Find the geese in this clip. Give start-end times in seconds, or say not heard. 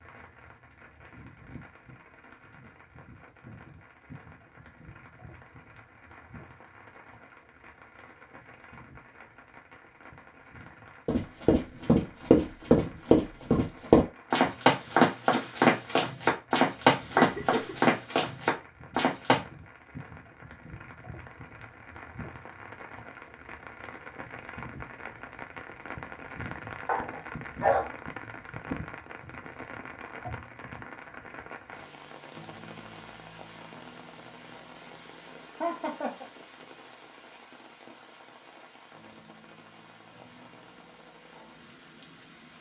not heard.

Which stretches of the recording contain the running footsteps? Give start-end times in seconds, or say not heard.
11.1-19.4.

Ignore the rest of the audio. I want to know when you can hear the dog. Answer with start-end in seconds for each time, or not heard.
26.9-27.9.